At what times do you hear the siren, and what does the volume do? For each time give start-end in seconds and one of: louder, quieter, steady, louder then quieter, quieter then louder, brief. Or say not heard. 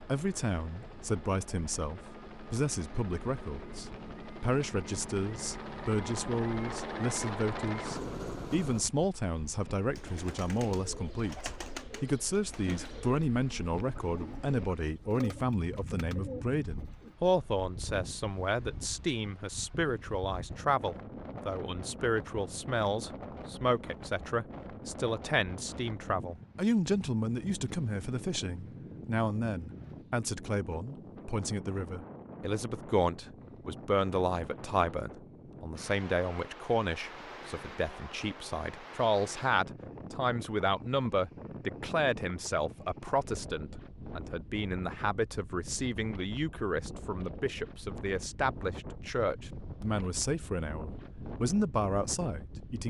not heard.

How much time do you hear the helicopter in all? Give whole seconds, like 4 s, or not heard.
9 s.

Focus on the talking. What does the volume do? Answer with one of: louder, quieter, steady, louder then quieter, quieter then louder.
steady.